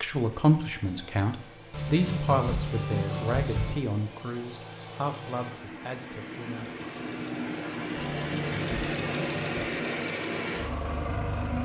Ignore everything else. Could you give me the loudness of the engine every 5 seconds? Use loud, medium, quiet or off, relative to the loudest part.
quiet, loud, loud.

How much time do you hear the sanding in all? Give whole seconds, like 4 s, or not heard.
4 s.